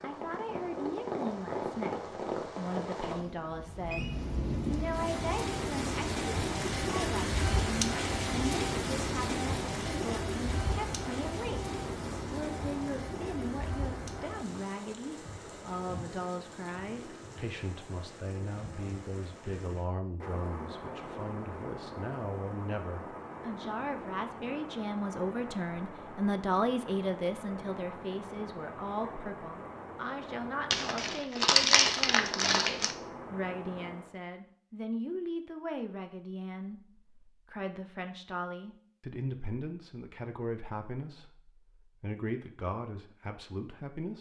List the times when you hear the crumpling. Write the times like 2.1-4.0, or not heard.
30.7-33.0.